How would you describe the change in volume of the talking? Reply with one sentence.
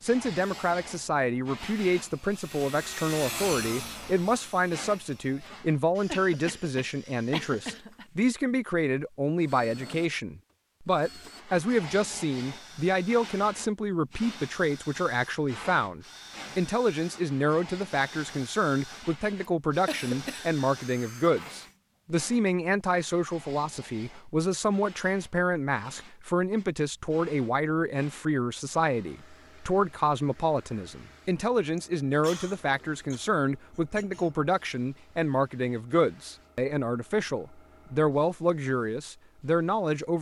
The loudness of the talking stays about the same.